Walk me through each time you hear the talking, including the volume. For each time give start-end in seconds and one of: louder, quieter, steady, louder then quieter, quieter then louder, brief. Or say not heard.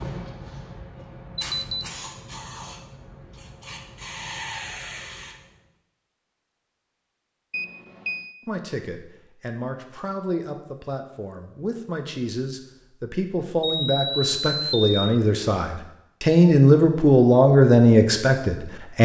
8.4-19.0 louder.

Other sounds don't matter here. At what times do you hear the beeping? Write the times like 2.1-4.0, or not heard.
1.4-1.9, 7.5-8.3, 13.6-15.2.